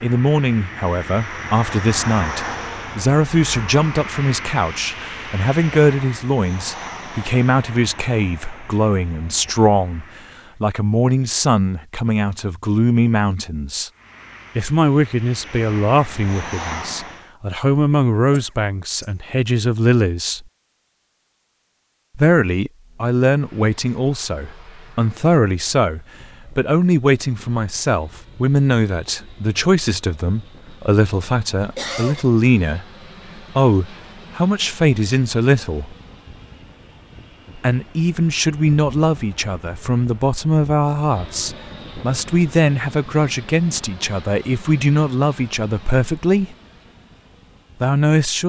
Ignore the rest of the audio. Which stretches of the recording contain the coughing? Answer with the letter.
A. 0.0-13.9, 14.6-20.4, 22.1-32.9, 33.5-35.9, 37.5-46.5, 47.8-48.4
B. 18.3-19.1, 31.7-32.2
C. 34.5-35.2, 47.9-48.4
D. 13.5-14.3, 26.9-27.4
B.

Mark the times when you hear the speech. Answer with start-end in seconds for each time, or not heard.
0.0-13.9, 14.6-20.4, 22.1-32.9, 33.5-35.9, 37.5-46.5, 47.8-48.4.